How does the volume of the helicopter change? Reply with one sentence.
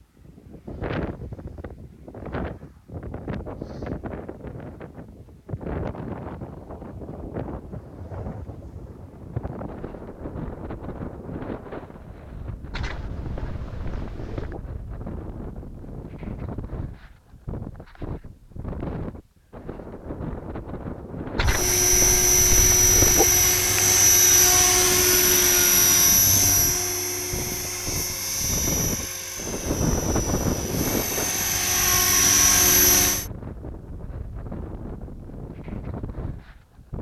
The volume of the helicopter goes down, then up.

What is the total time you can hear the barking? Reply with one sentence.
The barking can be heard for 4 seconds in total.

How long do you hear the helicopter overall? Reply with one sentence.
You can hear the helicopter for 12 seconds altogether.